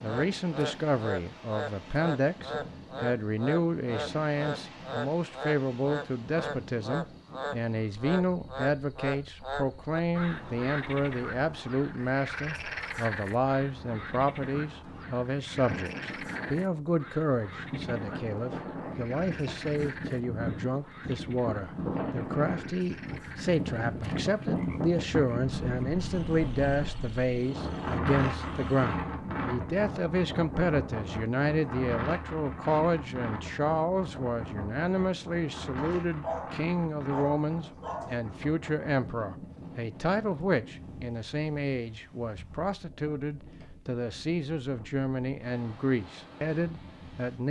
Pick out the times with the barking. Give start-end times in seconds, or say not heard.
35.8-38.1.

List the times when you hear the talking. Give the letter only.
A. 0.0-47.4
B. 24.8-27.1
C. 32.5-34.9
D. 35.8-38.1
A.